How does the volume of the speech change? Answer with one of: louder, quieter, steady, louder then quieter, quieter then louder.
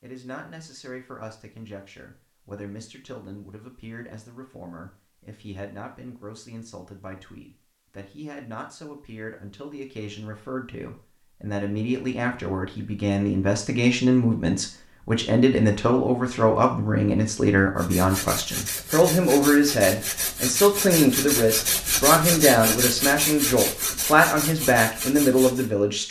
louder.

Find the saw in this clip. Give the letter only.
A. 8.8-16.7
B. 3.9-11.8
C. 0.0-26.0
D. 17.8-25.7
D.